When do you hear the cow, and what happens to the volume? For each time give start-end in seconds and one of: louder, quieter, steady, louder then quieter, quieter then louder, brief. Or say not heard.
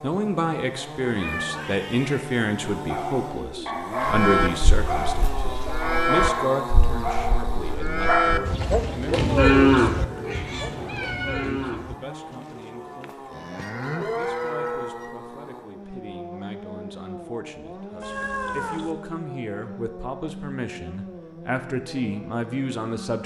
4.0-11.9 louder then quieter
13.0-15.1 brief.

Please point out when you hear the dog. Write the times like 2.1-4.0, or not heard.
2.9-8.6.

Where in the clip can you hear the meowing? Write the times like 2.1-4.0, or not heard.
1.1-2.3, 9.9-11.7, 18.0-18.9.